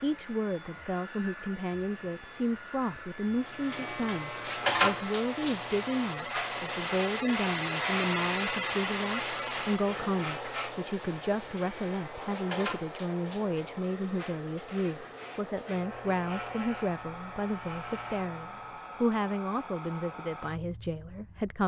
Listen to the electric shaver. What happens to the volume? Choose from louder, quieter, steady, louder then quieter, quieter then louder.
quieter.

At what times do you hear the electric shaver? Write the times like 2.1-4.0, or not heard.
3.4-18.8.